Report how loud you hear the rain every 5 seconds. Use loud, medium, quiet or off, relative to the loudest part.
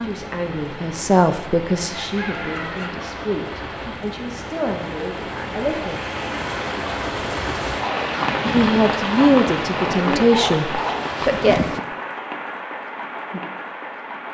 medium, loud, loud.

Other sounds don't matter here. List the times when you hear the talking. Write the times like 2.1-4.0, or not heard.
0.0-6.0, 8.5-11.6.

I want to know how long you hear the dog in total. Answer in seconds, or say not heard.
4 s.